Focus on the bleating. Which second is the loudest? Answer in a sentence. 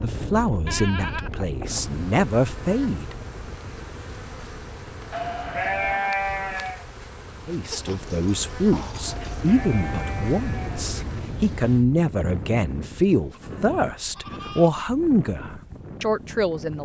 The loudest moment of the bleating is at 6 seconds.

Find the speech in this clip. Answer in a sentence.
You can hear the speech from 0.0 to 3.1 s and from 7.5 to 16.7 s.